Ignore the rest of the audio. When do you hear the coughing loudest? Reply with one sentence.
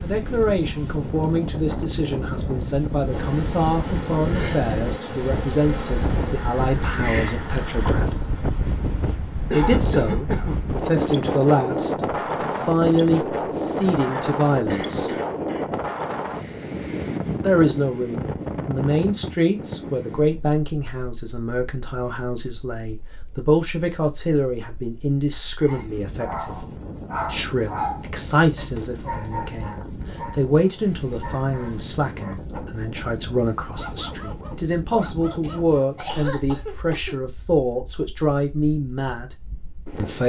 The volume of the coughing peaks at 10 seconds.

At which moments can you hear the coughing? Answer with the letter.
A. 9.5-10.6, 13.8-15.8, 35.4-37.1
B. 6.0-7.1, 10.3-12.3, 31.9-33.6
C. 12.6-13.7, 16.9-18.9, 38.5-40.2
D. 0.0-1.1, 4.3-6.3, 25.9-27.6
A.